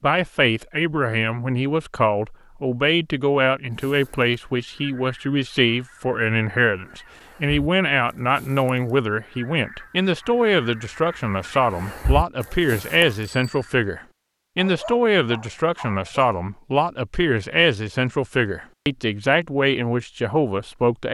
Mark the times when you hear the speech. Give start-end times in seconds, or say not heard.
0.0-21.0.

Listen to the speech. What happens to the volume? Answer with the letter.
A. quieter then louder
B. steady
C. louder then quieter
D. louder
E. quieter
B.